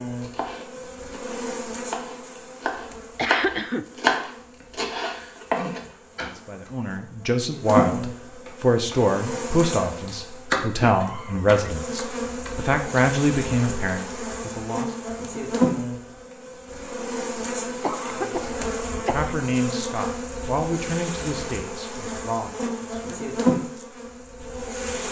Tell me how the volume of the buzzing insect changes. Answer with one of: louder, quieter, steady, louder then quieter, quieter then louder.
louder.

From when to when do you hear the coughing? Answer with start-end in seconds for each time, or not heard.
3.1-3.9, 10.8-11.6, 17.8-19.4.